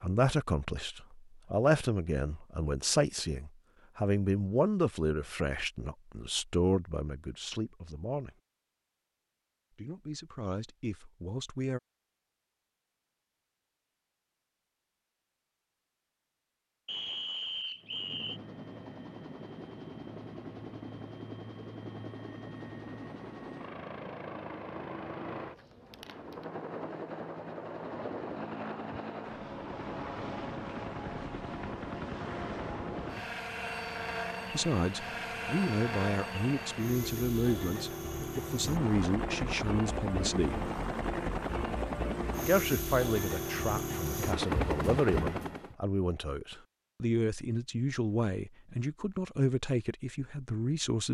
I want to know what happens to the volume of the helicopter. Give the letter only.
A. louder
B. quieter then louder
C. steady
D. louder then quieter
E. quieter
A.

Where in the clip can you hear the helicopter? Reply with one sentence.
You can hear the helicopter from 17.8 to 45.8 s.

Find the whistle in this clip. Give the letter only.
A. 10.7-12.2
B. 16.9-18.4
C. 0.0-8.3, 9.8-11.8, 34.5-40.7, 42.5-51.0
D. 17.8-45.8
B.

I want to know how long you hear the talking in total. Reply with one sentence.
The talking can be heard for 25 seconds in total.